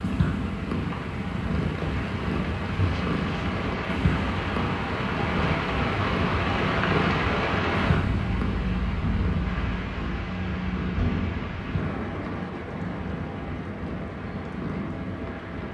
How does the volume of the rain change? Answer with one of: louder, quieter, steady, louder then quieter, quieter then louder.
louder then quieter.